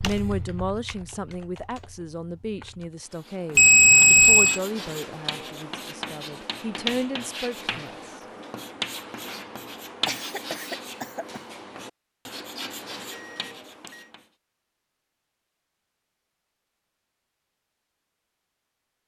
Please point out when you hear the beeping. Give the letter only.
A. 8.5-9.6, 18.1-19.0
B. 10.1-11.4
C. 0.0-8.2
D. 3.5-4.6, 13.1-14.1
D.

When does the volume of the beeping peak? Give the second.
4 s.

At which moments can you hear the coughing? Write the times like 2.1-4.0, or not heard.
10.1-11.4.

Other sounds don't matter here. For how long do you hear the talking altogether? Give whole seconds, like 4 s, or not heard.
8 s.